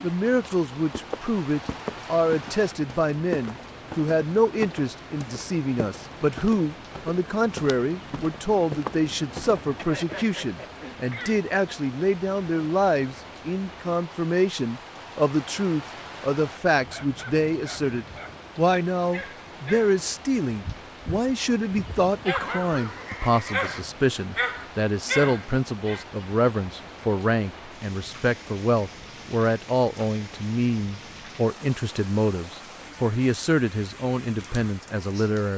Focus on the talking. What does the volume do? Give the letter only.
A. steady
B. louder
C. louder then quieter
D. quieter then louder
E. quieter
A.